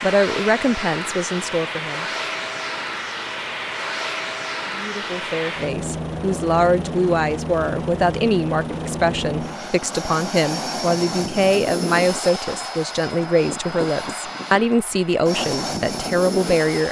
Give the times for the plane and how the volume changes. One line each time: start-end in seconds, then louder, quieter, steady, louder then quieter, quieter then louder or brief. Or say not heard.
0.0-16.8 steady.